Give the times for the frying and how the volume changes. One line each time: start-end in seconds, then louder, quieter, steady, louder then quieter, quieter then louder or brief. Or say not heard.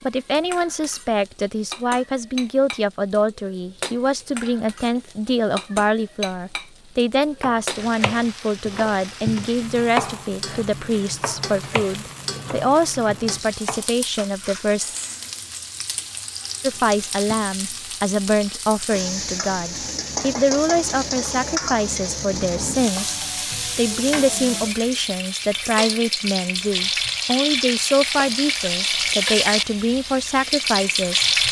0.0-31.4 louder.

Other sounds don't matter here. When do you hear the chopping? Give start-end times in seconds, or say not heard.
7.4-13.9.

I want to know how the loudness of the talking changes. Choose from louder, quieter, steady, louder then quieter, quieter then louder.
steady.